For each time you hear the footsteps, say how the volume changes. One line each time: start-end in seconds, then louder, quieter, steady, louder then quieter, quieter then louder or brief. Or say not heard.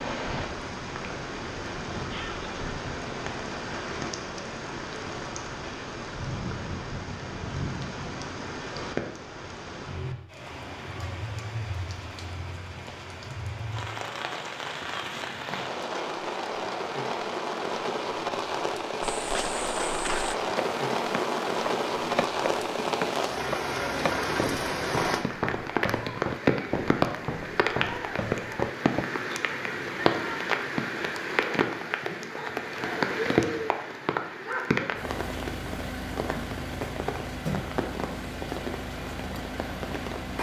19.1-29.1 steady.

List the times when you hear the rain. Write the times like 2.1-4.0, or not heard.
0.0-40.3.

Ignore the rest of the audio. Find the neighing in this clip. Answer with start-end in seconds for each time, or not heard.
not heard.